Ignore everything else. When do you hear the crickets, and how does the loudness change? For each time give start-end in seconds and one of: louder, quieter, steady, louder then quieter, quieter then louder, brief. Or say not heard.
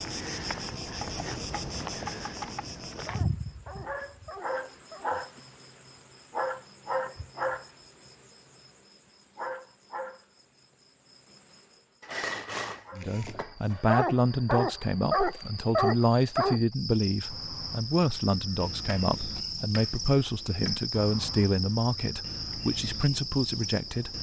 0.0-24.1 quieter then louder.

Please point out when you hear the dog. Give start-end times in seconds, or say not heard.
3.0-5.1, 13.7-16.6.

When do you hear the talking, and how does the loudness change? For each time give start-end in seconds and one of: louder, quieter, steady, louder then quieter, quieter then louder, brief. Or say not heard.
12.9-24.1 steady.